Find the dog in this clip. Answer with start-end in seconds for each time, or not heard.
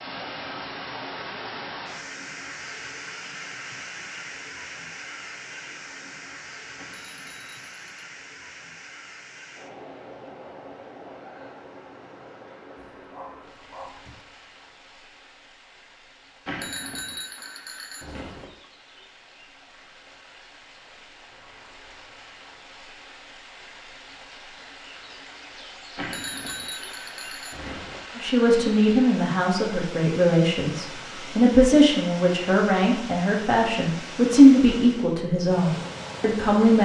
12.8-14.2.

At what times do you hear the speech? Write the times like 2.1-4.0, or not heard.
28.1-36.8.